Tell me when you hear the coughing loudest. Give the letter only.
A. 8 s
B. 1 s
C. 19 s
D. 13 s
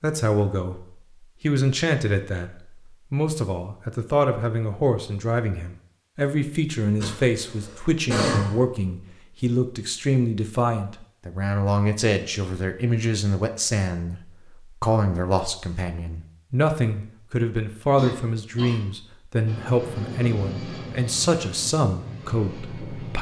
A.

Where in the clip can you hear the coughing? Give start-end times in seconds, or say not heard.
7.0-8.7, 17.9-18.8.